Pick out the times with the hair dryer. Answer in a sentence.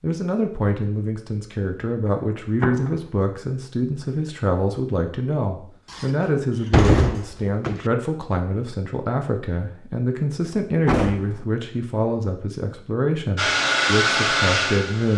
You can hear the hair dryer from 13.3 to 15.1 s.